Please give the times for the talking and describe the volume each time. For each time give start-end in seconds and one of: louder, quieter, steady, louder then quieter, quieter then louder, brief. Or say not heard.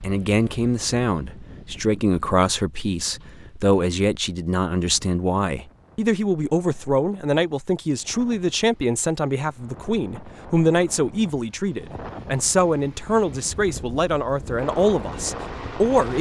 0.0-16.1 steady.